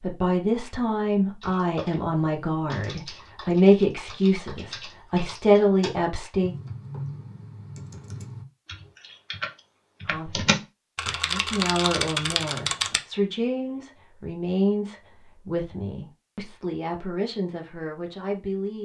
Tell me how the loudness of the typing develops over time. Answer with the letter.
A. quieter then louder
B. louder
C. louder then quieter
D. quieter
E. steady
B.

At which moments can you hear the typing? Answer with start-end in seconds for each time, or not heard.
1.4-13.0.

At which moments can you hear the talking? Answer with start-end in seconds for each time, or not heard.
0.0-6.5, 10.1-18.7.